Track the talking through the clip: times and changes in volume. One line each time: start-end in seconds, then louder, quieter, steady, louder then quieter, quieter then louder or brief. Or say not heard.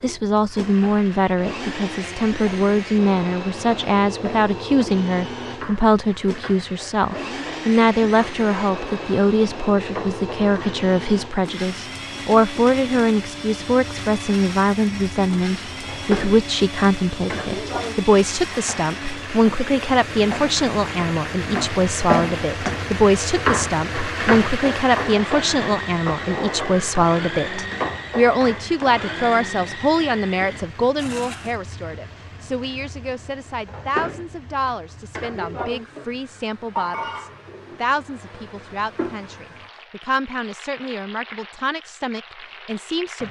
0.0-43.2 quieter.